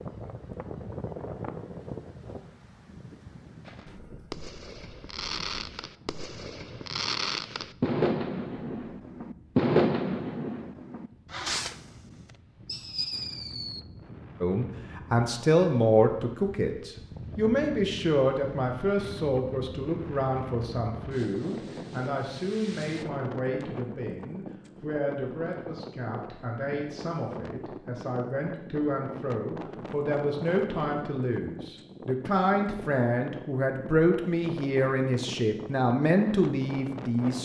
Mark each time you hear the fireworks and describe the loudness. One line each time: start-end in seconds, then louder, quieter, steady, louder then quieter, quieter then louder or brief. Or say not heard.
3.6-11.9 louder then quieter
12.7-13.8 brief.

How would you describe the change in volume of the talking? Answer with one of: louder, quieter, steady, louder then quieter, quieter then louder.
quieter then louder.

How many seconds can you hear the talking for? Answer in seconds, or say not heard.
23 s.